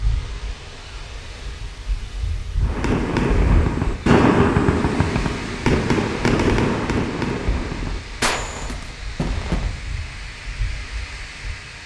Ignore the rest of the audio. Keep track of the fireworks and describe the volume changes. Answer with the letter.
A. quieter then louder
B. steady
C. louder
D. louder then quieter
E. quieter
E.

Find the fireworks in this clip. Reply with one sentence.
The fireworks can be heard from 2.6 to 9.8 s.